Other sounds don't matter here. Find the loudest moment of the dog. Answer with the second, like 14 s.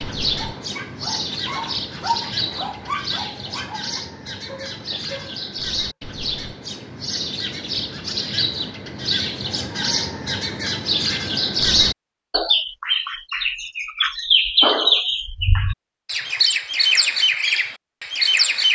2 s.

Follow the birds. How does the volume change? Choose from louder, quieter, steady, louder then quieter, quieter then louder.
louder.